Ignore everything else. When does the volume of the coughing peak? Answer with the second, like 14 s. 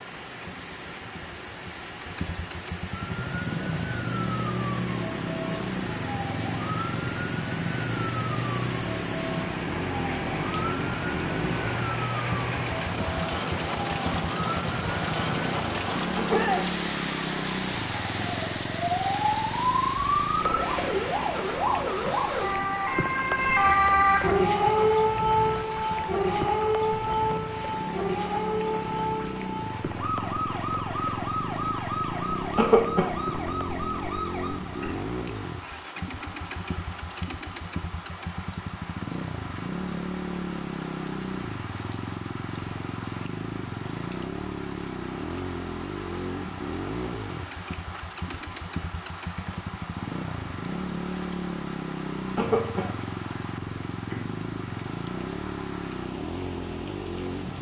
33 s.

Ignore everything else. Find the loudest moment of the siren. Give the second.
24 s.